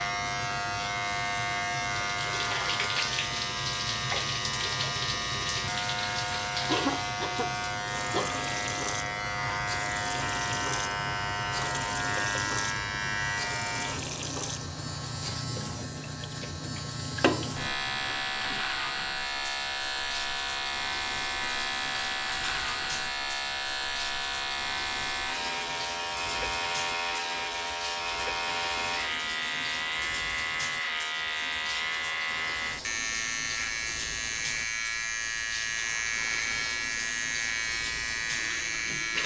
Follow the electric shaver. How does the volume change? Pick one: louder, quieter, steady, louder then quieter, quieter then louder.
steady.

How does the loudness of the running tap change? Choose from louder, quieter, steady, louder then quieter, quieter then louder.
quieter.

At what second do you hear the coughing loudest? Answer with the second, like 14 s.
7 s.